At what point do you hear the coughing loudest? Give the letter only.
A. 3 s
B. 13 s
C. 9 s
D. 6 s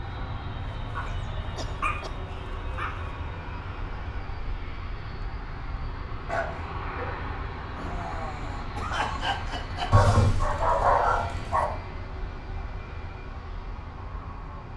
C.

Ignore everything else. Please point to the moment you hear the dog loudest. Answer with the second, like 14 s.
11 s.